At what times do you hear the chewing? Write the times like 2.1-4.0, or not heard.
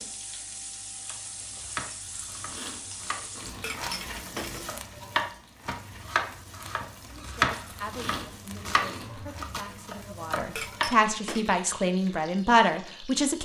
2.0-3.8, 7.5-9.2.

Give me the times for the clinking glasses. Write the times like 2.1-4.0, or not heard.
3.6-4.8, 10.6-11.5.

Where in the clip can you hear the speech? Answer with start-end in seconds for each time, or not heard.
7.3-13.3.